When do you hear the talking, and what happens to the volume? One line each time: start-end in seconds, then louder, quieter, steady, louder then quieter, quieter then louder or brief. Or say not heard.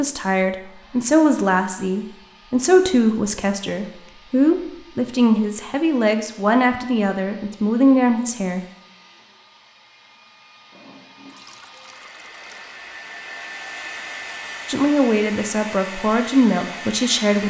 0.0-8.7 steady
14.7-17.4 brief.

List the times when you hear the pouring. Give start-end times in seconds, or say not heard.
11.2-12.8.